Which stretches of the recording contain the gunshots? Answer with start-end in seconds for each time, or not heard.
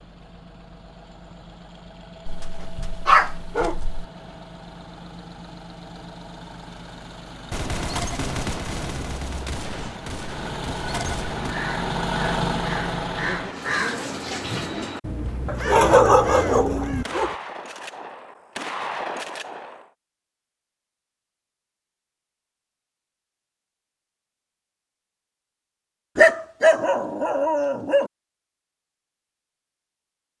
7.5-11.6, 17.0-19.9.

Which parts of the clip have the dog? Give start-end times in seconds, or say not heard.
2.2-4.0, 15.4-17.4, 26.1-28.1.